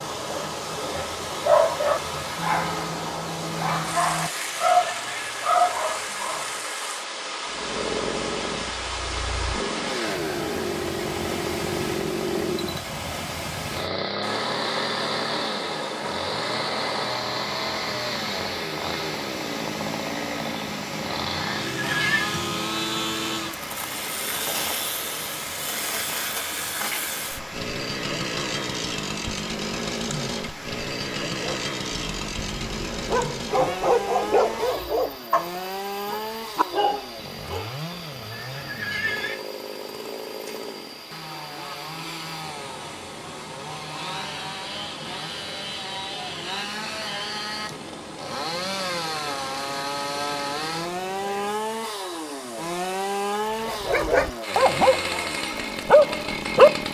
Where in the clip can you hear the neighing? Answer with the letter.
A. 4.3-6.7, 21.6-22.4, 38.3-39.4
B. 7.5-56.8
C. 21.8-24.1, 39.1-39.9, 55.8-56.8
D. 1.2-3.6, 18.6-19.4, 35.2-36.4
A.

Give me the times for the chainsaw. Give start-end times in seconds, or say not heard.
7.5-56.8.